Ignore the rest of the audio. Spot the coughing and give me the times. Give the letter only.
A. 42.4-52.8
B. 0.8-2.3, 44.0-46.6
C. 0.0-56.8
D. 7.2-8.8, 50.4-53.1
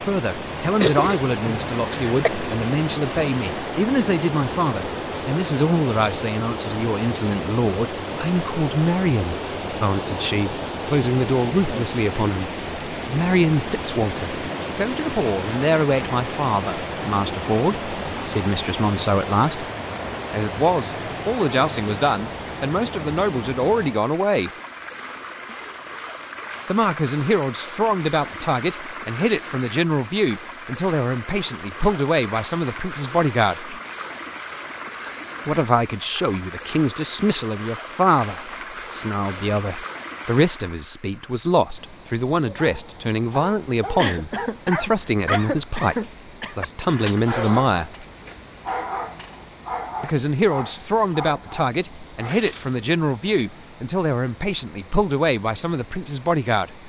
B.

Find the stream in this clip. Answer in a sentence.
The stream can be heard from 0.0 to 56.8 s.